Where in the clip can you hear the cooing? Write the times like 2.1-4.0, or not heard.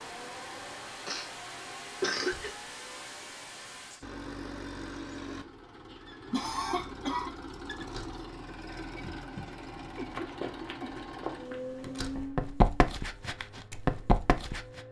not heard.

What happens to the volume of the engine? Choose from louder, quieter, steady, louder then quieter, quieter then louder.
steady.